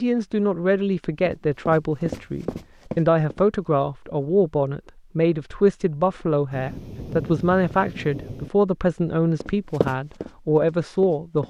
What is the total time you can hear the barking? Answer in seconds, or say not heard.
not heard.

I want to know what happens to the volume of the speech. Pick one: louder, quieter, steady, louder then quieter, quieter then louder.
steady.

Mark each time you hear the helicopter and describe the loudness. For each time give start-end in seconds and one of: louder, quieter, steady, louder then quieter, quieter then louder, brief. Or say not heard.
not heard.